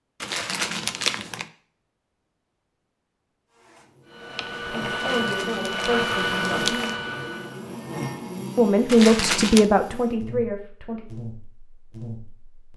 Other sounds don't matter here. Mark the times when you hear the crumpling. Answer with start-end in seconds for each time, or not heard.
0.2-1.4, 5.0-7.0, 8.8-9.7.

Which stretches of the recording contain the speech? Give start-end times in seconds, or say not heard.
4.7-6.8, 8.6-11.1.